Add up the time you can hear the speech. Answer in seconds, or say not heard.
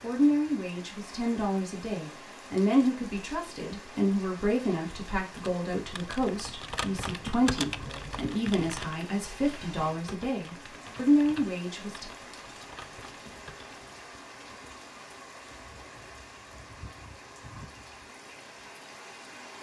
12 s.